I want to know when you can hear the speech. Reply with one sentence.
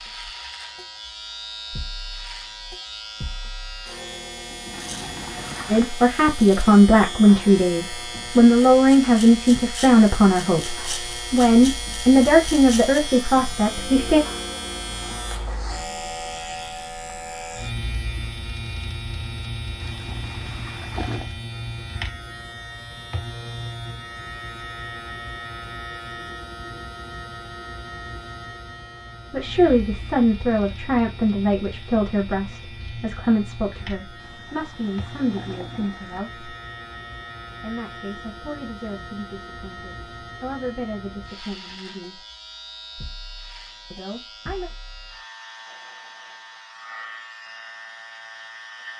The speech can be heard from 5.7 to 14.2 s, from 29.3 to 36.5 s, from 37.6 to 42.2 s and from 43.9 to 44.7 s.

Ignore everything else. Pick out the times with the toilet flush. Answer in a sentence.
You can hear the toilet flush from 4.7 to 5.9 s, from 19.8 to 21.3 s and from 34.1 to 36.2 s.